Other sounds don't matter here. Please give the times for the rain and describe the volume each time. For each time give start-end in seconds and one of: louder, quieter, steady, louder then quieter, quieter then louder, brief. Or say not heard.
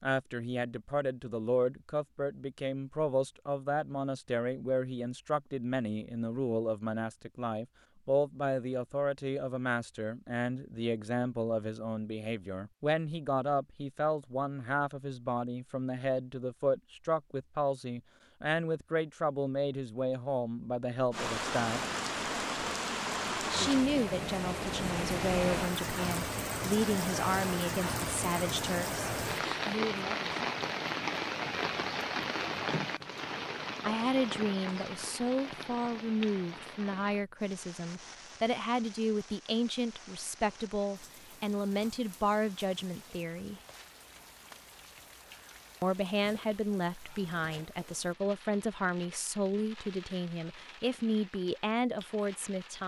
21.1-52.8 quieter.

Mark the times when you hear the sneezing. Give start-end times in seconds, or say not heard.
not heard.